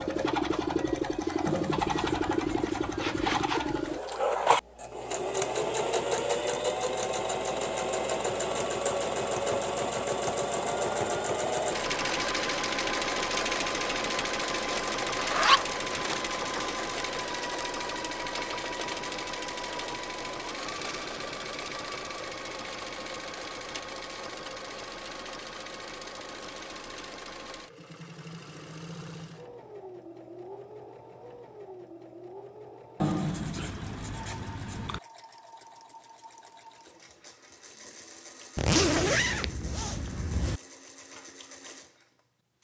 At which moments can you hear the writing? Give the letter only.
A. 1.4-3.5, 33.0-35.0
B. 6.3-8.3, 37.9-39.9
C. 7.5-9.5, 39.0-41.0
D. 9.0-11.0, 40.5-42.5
A.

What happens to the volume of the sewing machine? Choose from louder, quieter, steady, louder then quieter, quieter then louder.
quieter.